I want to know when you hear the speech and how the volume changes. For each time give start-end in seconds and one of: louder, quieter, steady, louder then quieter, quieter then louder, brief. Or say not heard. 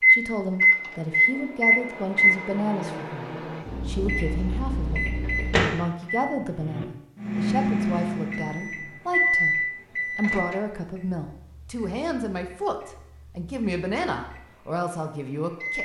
0.1-15.8 steady.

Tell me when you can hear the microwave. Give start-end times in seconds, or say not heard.
0.0-15.8.